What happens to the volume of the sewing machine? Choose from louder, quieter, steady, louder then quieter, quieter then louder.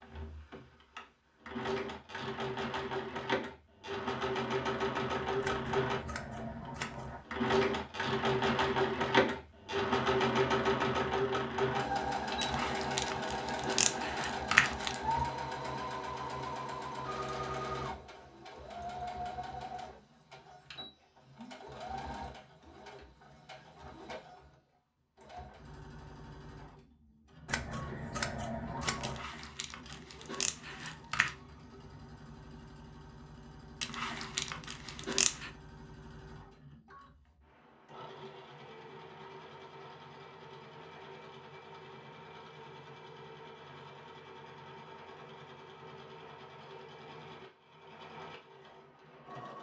quieter.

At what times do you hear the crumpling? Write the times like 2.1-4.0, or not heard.
12.4-14.9, 29.0-31.4, 33.8-35.5.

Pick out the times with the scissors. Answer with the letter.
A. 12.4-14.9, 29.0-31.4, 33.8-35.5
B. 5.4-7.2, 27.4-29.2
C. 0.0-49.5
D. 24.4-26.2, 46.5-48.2
B.